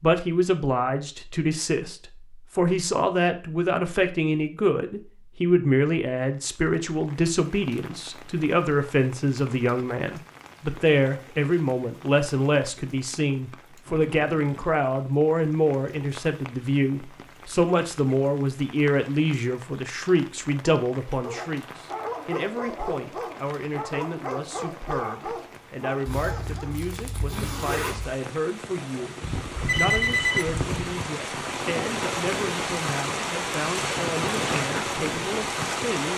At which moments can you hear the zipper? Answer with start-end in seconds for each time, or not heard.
26.1-28.1.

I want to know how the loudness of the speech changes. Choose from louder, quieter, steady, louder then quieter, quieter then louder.
quieter.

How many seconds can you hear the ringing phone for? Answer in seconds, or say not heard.
2 s.